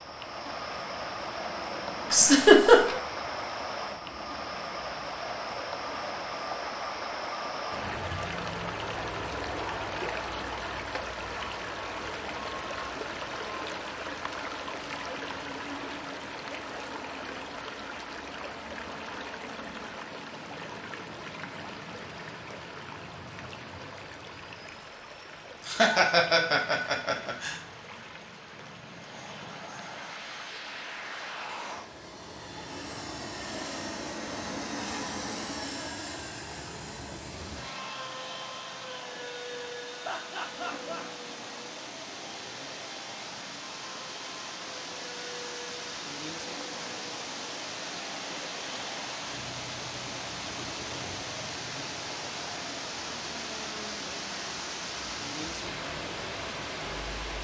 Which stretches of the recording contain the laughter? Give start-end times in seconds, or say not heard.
2.1-3.0, 25.6-27.6, 40.0-41.0.